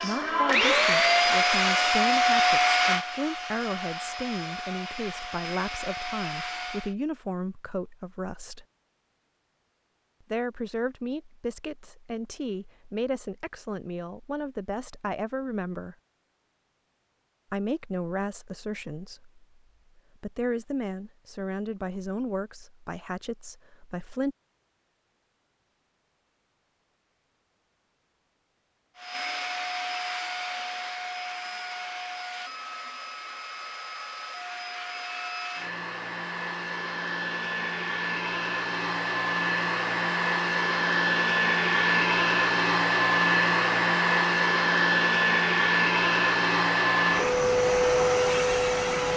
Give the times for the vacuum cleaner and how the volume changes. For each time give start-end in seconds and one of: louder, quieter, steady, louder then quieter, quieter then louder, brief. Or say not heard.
0.0-7.0 quieter
28.9-49.1 louder.